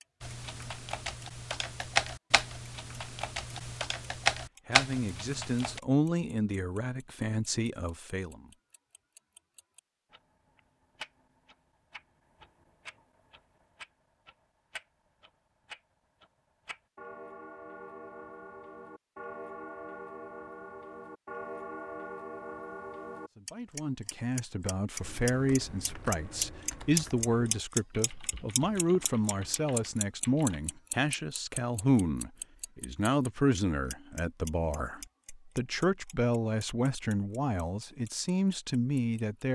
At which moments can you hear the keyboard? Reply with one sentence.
The keyboard can be heard from 0.2 to 5.8 s and from 25.0 to 30.6 s.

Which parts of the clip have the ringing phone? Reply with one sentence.
The ringing phone can't be heard in this clip.